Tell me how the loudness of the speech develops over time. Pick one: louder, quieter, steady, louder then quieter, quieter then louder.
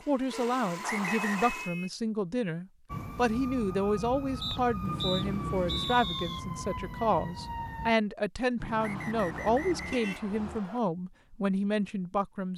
steady.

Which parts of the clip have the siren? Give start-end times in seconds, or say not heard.
2.9-8.0.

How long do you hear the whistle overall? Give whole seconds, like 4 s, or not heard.
5 s.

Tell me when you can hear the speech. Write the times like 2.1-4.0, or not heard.
0.1-12.5.